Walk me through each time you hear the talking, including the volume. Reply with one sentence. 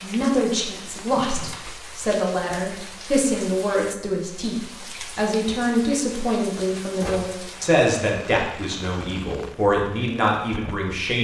You can hear the talking from 0.0 to 11.1 s, at a steady volume.